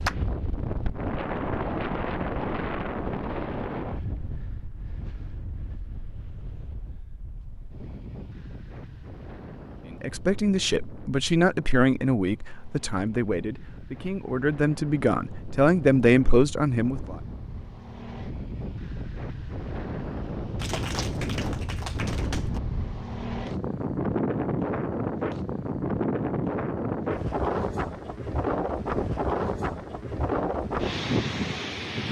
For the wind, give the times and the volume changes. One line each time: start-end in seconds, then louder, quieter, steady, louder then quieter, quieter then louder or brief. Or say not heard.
0.0-32.0 quieter then louder.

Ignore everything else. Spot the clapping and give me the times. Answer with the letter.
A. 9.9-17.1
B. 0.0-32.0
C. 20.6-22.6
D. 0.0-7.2
C.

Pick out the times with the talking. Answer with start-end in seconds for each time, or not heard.
9.9-17.1.